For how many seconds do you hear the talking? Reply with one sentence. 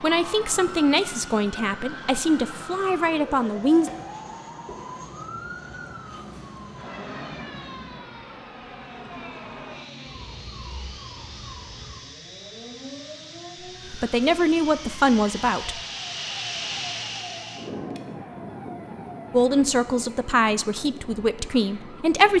You can hear the talking for 9 seconds altogether.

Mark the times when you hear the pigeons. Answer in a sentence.
You can't hear the pigeons here.